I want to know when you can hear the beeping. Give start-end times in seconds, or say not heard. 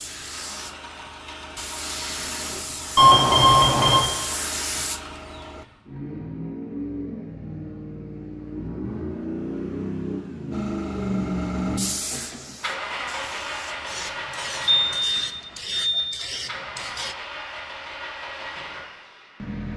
3.0-4.0, 14.7-16.0.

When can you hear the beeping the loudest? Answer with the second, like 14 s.
3 s.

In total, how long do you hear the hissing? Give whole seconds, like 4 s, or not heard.
12 s.